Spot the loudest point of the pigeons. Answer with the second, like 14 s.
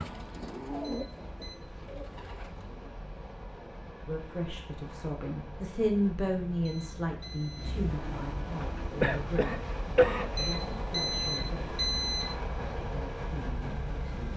1 s.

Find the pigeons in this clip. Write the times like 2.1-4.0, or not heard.
0.0-2.9.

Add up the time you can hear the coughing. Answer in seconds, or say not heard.
2 s.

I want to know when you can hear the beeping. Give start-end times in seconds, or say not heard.
0.8-1.6, 6.7-7.8, 10.3-12.3.